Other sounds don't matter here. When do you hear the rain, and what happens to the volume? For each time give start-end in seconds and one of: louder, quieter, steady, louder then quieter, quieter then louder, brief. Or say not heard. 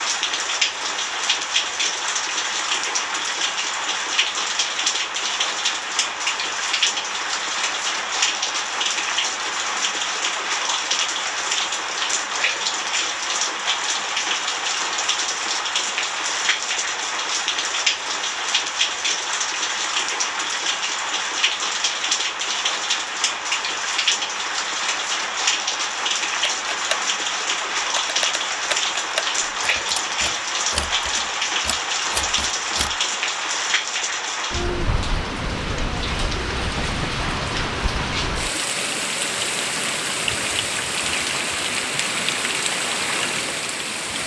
0.0-44.2 steady.